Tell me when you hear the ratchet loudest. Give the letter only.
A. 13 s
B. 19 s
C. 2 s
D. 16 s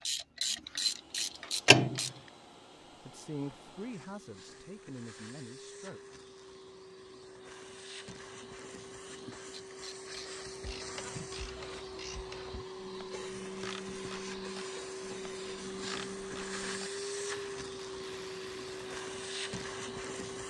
C.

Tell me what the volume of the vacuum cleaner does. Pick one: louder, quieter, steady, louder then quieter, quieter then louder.
louder.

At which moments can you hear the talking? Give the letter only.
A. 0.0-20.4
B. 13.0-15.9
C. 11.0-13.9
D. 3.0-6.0
D.